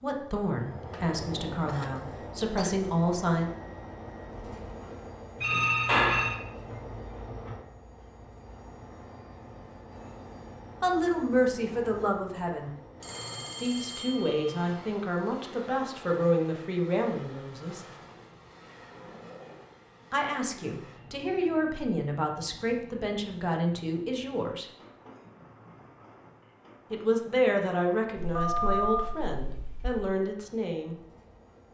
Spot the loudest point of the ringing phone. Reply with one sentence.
The volume of the ringing phone peaks at 6 seconds.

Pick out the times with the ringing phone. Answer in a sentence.
You can hear the ringing phone from 5.4 to 6.3 s, from 13.0 to 14.7 s and from 28.2 to 30.1 s.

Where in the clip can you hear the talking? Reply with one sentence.
The talking can be heard from 0.0 to 3.5 s, from 10.8 to 12.7 s, from 13.6 to 17.8 s, from 20.1 to 24.6 s and from 26.9 to 30.9 s.